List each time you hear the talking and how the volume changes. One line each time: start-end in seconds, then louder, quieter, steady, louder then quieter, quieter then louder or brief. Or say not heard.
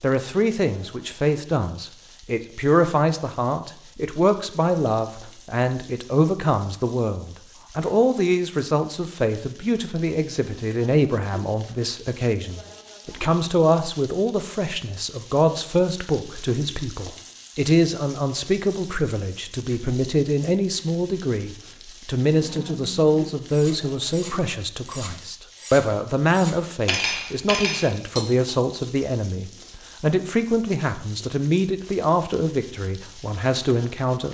0.0-34.3 steady.